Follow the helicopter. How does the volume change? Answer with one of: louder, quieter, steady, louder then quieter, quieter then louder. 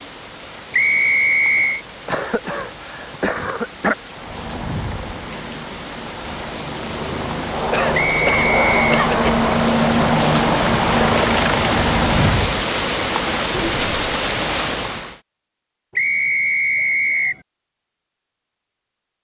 louder.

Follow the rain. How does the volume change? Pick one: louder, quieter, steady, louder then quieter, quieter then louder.
louder.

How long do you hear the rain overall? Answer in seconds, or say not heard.
15 s.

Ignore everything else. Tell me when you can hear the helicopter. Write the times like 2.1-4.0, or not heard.
4.1-12.7.